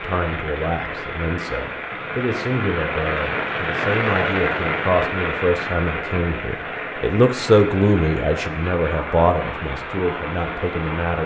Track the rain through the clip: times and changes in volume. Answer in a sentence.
The rain can be heard from 0.0 to 11.2 s, getting louder then quieter.